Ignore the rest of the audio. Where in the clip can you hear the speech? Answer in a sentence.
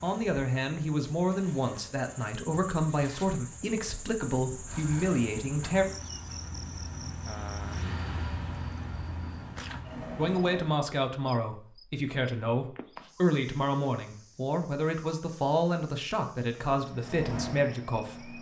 You can hear the speech from 0.0 to 5.8 s and from 10.2 to 18.3 s.